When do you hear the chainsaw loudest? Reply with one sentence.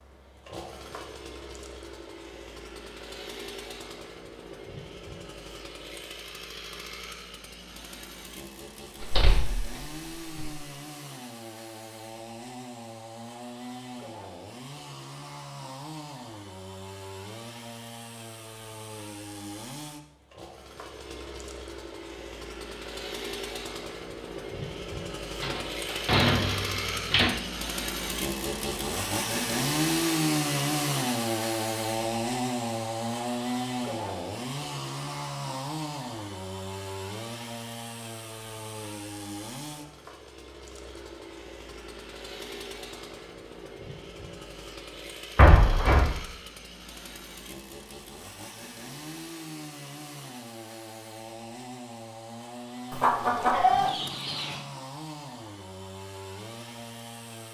The volume of the chainsaw peaks at 30 seconds.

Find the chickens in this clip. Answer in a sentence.
The chickens can be heard from 52.9 to 54.6 s.